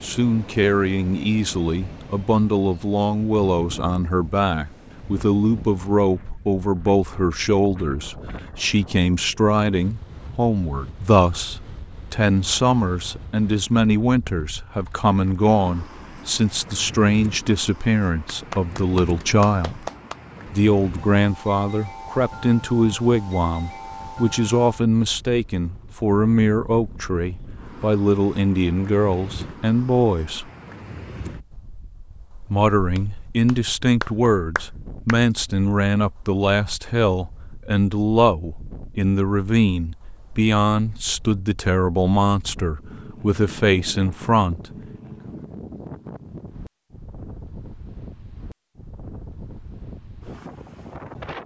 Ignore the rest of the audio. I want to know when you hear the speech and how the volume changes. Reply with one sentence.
You can hear the speech from 0.0 to 19.9 s, at a steady volume; from 20.4 to 30.5 s, at a steady volume; and from 32.5 to 44.6 s, at a steady volume.